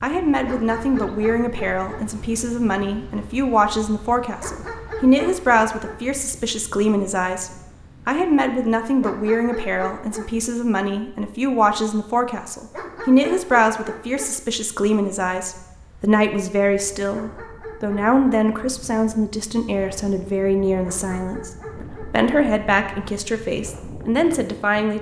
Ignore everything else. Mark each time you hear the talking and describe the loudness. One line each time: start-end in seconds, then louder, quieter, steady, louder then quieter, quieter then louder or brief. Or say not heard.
0.0-24.9 steady.